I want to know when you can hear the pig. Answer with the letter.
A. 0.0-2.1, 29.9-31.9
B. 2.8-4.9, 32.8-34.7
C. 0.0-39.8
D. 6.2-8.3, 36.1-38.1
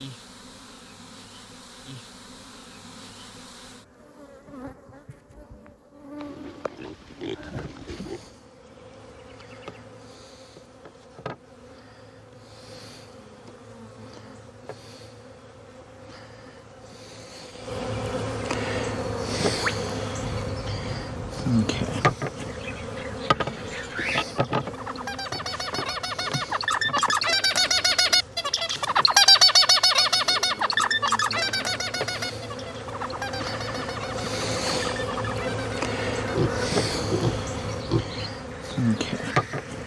D.